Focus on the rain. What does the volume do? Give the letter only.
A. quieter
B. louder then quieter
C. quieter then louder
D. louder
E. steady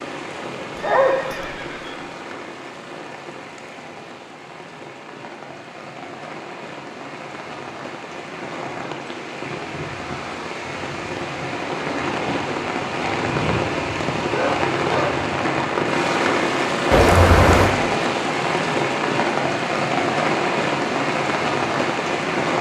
D.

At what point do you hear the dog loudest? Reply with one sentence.
The loudest moment of the dog is at 1 second.